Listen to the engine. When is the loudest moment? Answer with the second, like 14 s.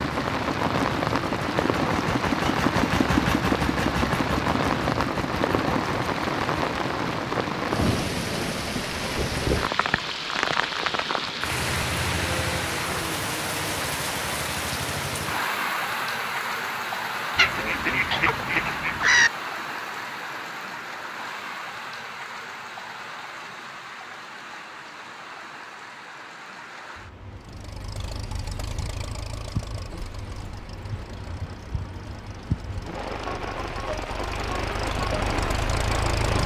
3 s.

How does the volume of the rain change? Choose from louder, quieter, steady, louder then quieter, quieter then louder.
quieter then louder.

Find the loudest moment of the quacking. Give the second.
19 s.